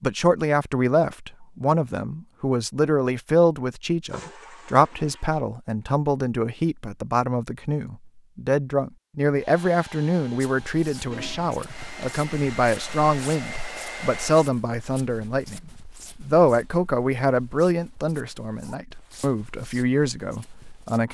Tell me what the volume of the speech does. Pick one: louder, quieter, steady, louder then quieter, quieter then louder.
steady.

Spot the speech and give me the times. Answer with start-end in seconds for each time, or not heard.
0.0-21.0.